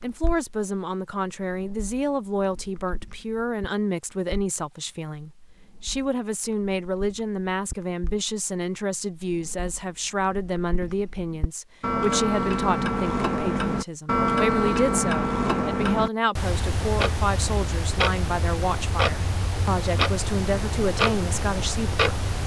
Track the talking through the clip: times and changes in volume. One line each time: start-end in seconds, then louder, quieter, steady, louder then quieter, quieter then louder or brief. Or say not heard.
0.0-22.2 steady.